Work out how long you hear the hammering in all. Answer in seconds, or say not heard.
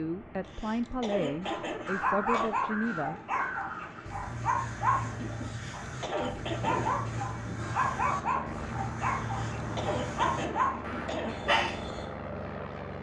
not heard.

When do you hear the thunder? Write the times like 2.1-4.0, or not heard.
6.2-7.8.